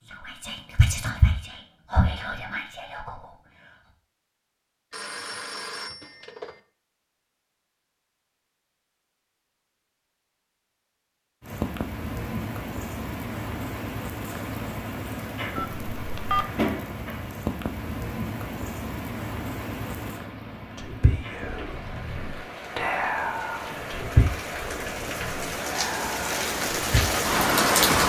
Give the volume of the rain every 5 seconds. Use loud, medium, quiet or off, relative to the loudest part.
off, off, medium, medium, quiet, loud.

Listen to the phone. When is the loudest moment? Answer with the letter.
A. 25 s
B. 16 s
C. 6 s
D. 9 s
B.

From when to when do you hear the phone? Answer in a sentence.
You can hear the phone from 4.9 to 6.5 s and from 15.6 to 16.4 s.